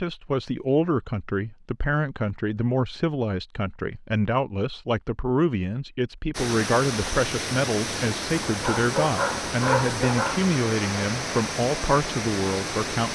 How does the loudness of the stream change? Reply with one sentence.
The volume of the stream stays about the same.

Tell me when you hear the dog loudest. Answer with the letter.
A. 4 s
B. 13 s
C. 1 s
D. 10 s
D.